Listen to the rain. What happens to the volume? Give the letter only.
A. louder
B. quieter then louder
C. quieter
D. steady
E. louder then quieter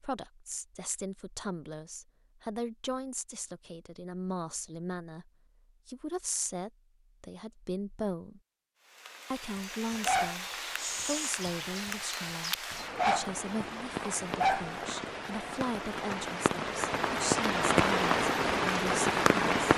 A.